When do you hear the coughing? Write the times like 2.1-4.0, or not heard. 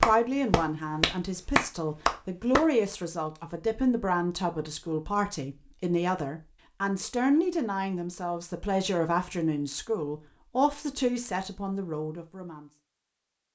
not heard.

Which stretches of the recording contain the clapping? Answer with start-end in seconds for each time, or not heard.
0.0-2.6.